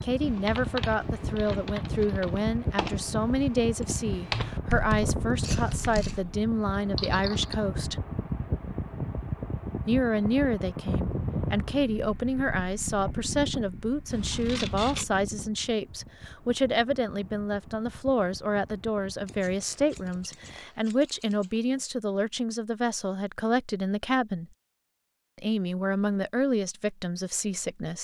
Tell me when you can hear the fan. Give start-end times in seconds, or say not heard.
0.0-20.7.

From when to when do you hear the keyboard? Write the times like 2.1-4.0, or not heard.
0.2-7.5.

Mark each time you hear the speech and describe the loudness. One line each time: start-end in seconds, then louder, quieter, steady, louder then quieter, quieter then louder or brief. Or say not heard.
0.0-8.1 steady
9.8-24.4 steady
25.4-27.9 brief.